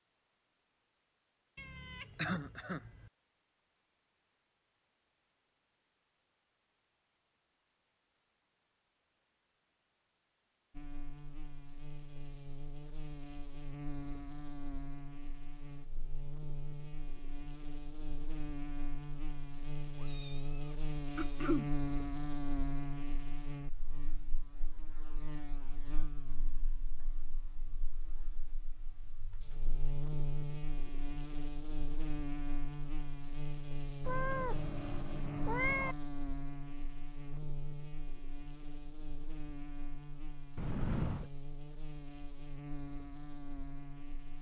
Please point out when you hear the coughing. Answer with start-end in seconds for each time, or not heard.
2.1-2.8, 21.1-21.7, 40.5-41.3.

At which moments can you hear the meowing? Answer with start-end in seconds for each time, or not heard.
1.6-3.1, 19.9-21.4, 34.0-36.0.